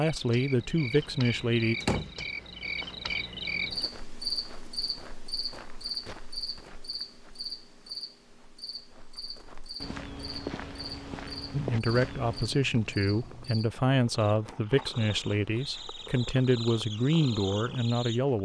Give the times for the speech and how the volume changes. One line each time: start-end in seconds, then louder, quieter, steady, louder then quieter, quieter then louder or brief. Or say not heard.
0.0-1.8 brief
11.5-18.3 steady.